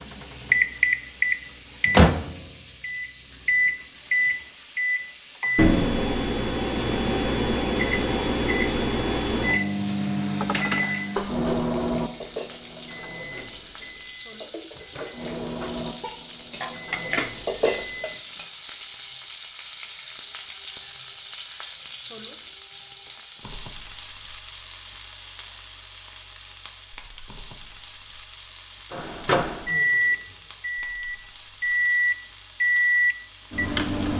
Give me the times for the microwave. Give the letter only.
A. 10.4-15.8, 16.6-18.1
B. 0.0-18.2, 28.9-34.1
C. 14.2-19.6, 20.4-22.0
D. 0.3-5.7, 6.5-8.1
B.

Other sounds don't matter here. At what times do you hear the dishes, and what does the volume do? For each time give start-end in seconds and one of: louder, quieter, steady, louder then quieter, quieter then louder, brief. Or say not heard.
10.4-15.8 quieter then louder
16.6-18.1 brief.